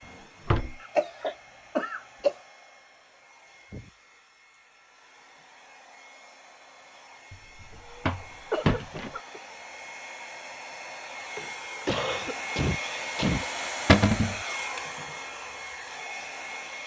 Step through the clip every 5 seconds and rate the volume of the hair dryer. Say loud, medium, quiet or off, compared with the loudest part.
quiet, quiet, loud, loud.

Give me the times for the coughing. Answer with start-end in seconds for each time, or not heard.
0.8-2.4, 8.0-9.4, 11.4-13.4.